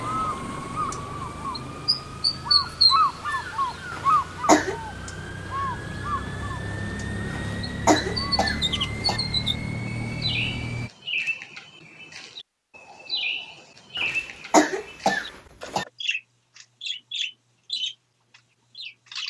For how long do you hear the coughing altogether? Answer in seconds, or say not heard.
5 s.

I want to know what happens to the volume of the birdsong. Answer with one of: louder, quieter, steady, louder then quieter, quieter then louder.
quieter.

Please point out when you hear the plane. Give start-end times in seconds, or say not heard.
0.0-10.9.